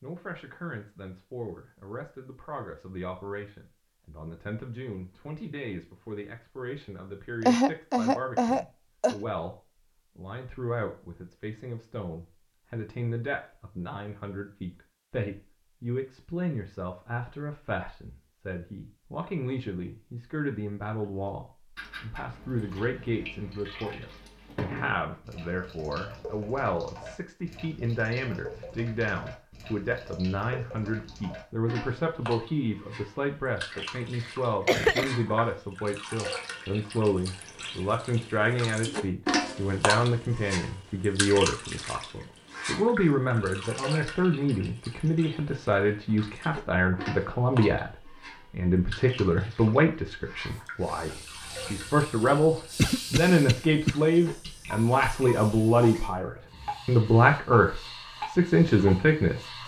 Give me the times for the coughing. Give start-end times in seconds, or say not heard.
7.4-9.2, 34.2-35.1, 52.8-54.0.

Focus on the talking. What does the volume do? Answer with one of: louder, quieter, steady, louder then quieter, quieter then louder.
louder.